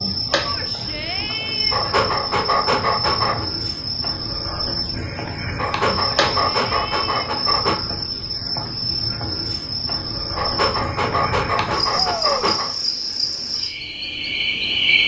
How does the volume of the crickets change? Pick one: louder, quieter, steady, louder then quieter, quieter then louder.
steady.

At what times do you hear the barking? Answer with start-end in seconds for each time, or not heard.
1.7-3.5, 5.5-7.8, 10.3-12.8.